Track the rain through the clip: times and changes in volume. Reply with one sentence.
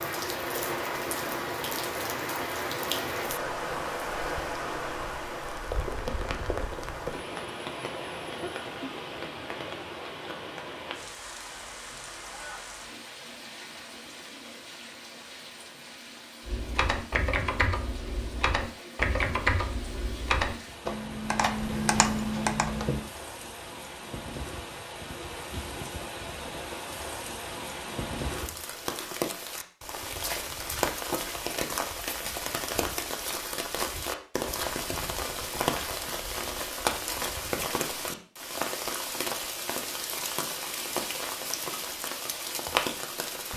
The rain can be heard from 0.0 to 43.5 s, getting quieter then louder.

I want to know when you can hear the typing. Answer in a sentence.
The typing can be heard from 16.4 to 23.1 s.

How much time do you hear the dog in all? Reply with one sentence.
The dog can't be heard in this clip.